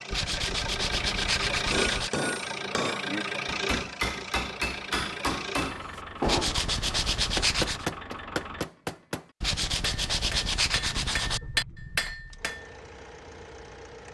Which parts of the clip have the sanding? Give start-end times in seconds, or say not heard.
0.1-2.1, 6.2-7.8, 9.4-11.4.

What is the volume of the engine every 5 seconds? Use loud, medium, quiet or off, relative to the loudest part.
loud, medium, quiet.